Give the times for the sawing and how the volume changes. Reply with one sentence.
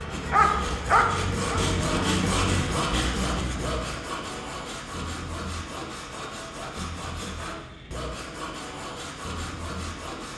The sawing can be heard from 0.0 to 10.3 s, getting quieter.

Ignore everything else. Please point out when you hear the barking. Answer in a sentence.
The barking can be heard from 0.1 to 1.6 s.